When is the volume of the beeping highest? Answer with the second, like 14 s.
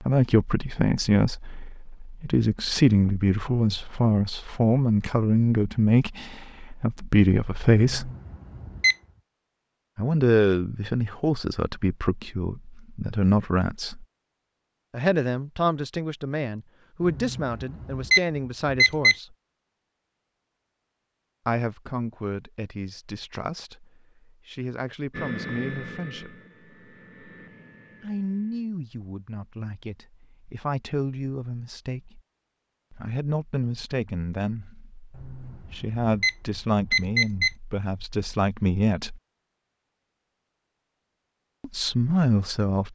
19 s.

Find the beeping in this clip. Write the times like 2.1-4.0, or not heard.
7.8-8.9, 17.0-19.1, 35.1-37.5.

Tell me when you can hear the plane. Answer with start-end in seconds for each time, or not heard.
25.1-28.6.